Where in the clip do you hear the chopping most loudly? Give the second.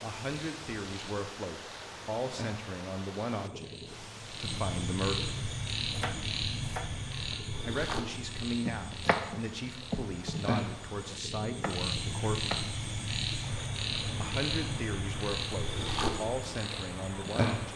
9 s.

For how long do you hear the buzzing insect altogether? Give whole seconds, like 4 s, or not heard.
not heard.